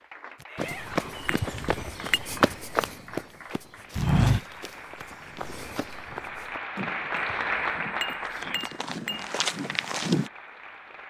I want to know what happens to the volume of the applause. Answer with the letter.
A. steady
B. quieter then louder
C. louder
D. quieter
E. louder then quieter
E.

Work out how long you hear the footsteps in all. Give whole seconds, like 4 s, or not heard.
10 s.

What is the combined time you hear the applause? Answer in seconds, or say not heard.
11 s.